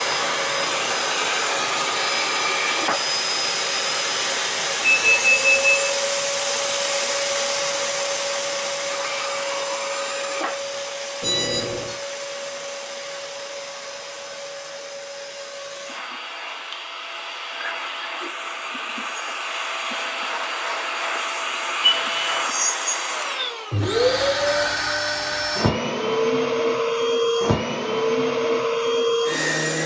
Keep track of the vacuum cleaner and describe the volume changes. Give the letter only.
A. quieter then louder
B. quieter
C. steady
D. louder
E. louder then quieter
A.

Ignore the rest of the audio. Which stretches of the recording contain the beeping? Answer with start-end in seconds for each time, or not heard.
4.8-5.9, 11.2-12.0, 21.8-22.4.